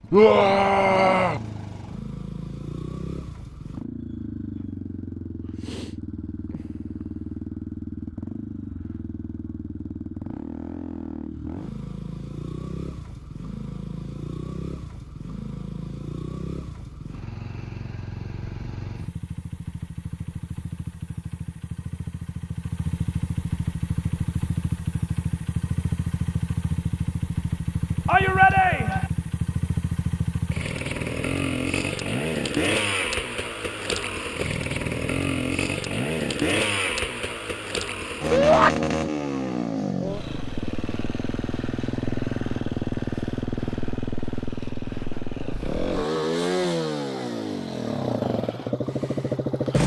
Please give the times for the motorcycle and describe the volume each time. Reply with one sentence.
The motorcycle can be heard from 0.0 to 49.8 s, getting louder.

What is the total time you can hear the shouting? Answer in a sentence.
You can hear the shouting for 3 seconds altogether.